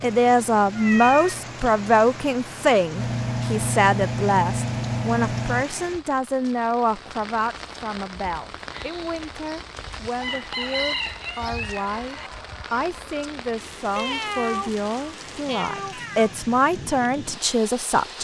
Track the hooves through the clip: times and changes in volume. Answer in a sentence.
You can't hear the hooves here.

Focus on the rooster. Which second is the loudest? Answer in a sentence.
The loudest moment of the rooster is at 11 seconds.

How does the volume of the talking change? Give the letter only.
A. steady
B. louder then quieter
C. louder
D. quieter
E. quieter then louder
E.